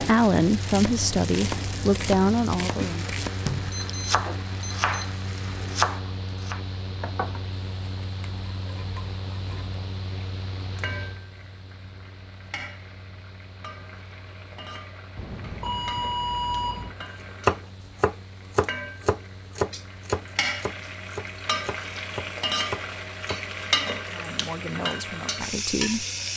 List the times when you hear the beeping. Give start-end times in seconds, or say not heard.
3.7-5.1, 15.2-16.9.